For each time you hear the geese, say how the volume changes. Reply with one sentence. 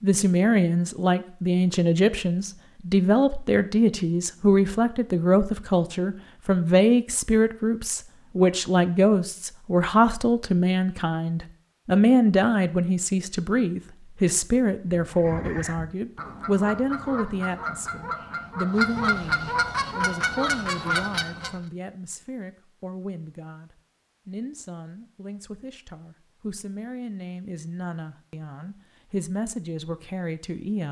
You can hear the geese from 14.9 to 21.6 s, getting louder.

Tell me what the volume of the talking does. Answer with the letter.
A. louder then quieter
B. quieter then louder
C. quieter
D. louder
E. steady
C.